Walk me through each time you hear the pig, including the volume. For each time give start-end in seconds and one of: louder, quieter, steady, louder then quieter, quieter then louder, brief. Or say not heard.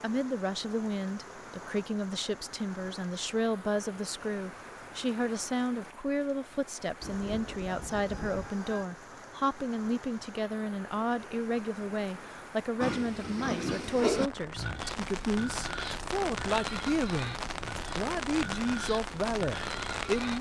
12.8-20.3 quieter.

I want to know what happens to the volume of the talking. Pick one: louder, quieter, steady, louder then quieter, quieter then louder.
steady.